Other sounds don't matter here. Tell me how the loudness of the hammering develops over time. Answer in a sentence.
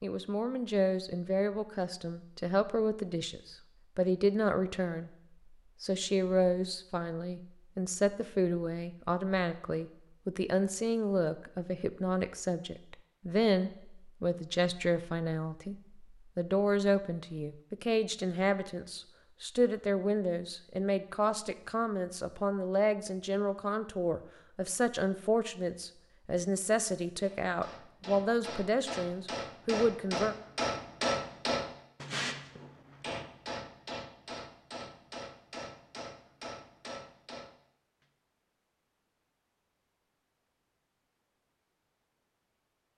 The volume of the hammering goes up, then down.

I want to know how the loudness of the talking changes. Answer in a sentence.
The volume of the talking stays about the same.